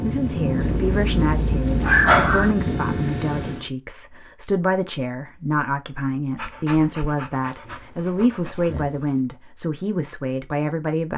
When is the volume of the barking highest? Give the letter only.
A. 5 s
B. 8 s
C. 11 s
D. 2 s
D.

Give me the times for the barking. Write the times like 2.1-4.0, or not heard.
0.6-2.5, 6.3-9.2.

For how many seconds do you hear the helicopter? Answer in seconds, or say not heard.
4 s.